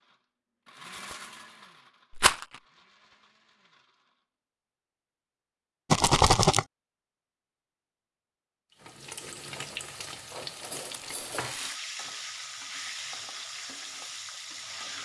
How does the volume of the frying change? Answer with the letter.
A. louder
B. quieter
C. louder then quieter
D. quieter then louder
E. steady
E.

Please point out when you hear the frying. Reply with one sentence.
You can hear the frying from 8.8 to 15.0 s.